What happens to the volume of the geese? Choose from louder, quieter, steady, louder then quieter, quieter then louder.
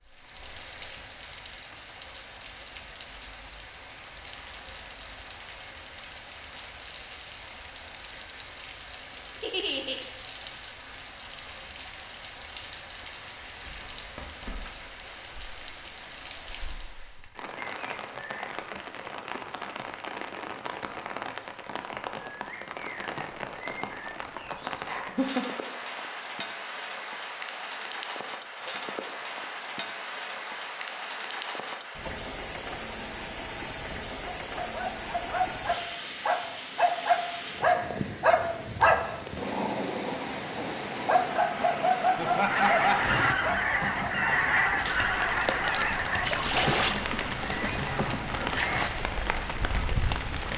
quieter.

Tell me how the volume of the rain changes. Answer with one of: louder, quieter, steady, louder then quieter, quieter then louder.
louder.